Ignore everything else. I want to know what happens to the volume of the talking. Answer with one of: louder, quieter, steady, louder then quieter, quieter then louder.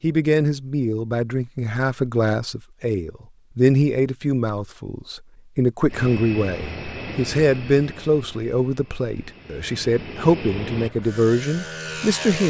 steady.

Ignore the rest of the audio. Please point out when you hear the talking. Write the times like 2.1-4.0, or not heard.
0.0-12.4.